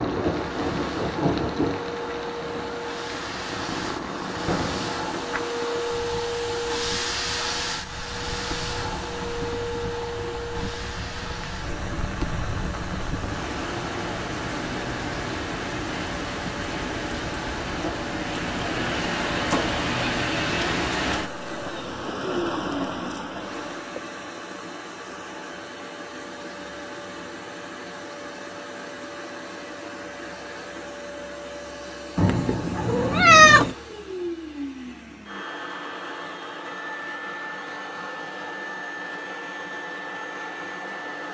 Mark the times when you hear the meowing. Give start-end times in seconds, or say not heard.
32.1-33.8.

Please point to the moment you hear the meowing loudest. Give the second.
33 s.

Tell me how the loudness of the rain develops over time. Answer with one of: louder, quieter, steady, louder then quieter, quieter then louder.
quieter then louder.